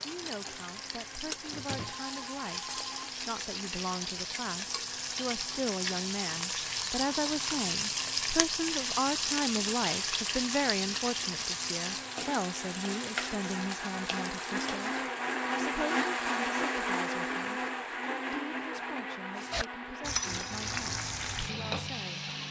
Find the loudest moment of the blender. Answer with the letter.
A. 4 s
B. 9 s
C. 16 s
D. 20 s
C.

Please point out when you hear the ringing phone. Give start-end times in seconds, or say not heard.
1.8-3.1.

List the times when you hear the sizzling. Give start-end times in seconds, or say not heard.
0.0-15.1, 19.4-22.4.